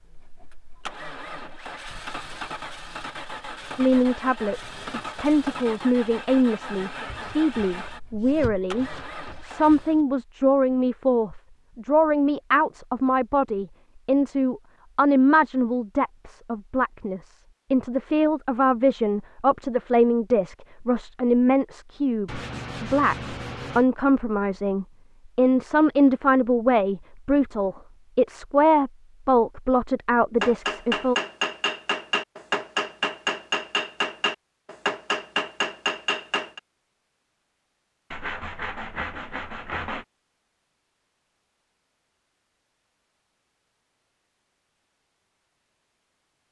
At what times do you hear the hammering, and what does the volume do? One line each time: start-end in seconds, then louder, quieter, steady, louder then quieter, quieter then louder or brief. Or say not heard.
30.4-36.6 steady.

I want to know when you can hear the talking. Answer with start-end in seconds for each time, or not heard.
3.8-31.1.